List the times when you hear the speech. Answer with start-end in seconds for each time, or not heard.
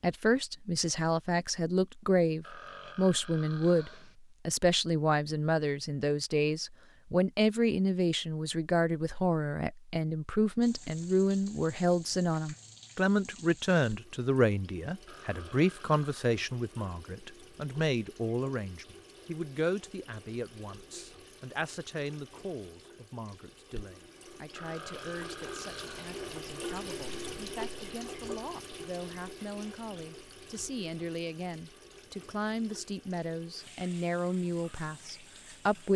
0.0-35.9.